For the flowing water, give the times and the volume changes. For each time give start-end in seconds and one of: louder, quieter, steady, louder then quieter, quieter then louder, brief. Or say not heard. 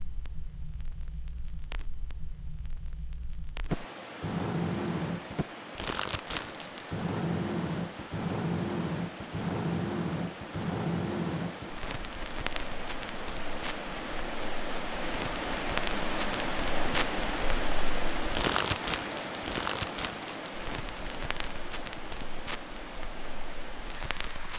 3.6-24.5 louder then quieter.